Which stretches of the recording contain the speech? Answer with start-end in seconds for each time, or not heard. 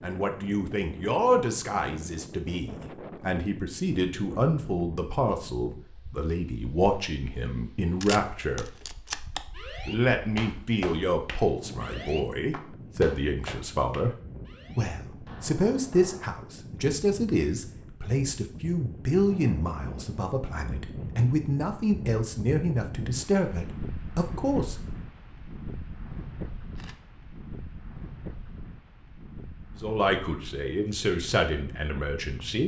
0.0-8.7, 9.8-14.2, 14.8-24.8, 29.8-32.6.